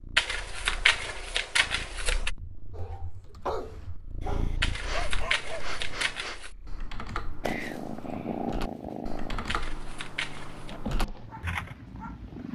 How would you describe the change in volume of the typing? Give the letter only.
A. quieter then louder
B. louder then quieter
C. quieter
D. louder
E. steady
D.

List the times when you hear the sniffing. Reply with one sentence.
The sniffing can be heard from 4.8 to 6.4 s.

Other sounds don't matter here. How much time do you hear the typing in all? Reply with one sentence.
You can hear the typing for 9 seconds altogether.